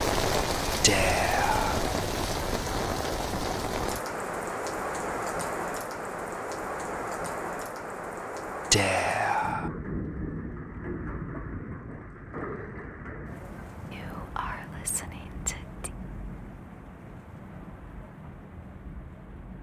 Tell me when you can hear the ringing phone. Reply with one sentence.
The ringing phone can't be heard in this clip.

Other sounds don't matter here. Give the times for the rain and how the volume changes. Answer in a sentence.
You can hear the rain from 0.0 to 19.5 s, getting quieter.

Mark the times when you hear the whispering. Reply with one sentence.
The whispering can be heard from 0.8 to 1.9 s, from 8.7 to 9.7 s and from 13.9 to 15.9 s.